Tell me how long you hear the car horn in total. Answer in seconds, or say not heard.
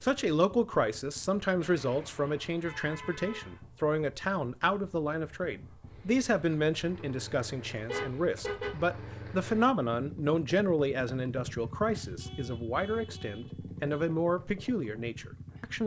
5 s.